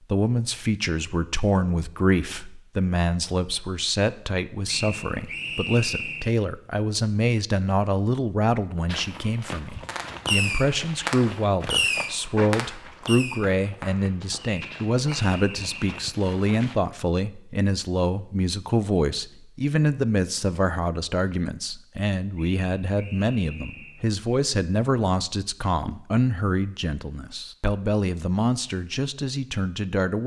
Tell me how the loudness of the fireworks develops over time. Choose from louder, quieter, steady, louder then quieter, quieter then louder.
quieter.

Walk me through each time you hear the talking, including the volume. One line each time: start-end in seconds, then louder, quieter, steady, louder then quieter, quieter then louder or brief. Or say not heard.
0.1-30.2 steady.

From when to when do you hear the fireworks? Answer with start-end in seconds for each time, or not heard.
9.8-15.3.